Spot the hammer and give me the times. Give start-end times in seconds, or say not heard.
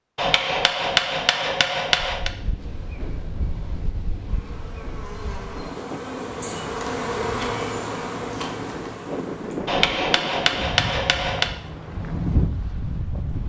0.1-2.3, 9.7-11.5.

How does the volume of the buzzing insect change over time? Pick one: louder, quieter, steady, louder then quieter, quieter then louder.
louder then quieter.